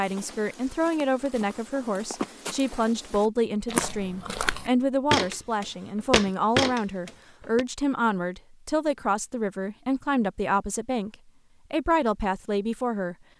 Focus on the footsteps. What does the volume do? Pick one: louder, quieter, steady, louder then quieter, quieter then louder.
louder.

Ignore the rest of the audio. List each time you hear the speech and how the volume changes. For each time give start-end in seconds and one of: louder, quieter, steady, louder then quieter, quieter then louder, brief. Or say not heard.
0.0-13.2 steady.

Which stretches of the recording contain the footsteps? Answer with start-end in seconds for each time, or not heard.
0.0-7.7.